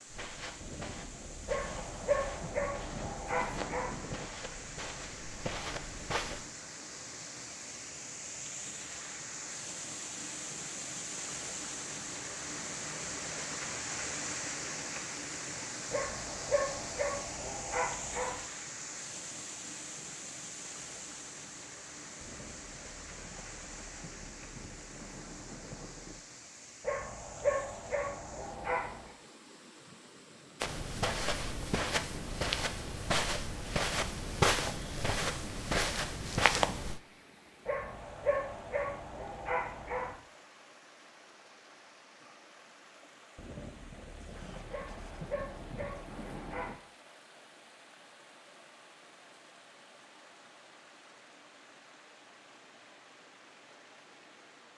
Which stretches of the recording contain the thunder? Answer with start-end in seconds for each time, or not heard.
0.6-4.3, 22.2-26.2, 43.4-46.8.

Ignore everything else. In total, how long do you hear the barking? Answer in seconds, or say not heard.
12 s.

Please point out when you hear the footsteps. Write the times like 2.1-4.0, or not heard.
0.1-6.5, 30.6-37.0.